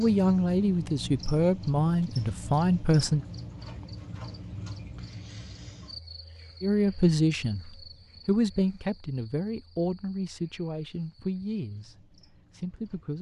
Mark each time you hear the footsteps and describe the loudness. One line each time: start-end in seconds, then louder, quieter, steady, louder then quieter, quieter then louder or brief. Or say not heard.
not heard.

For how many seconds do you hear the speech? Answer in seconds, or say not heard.
10 s.